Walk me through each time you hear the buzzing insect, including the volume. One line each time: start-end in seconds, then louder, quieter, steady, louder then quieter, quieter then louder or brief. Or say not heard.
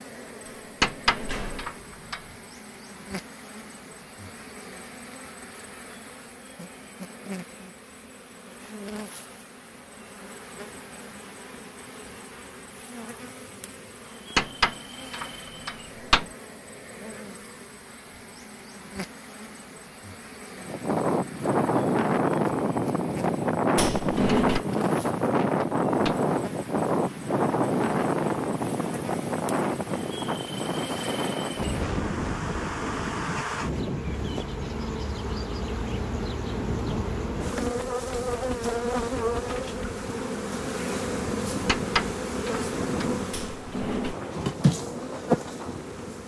0.0-46.2 louder.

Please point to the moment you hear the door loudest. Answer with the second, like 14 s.
24 s.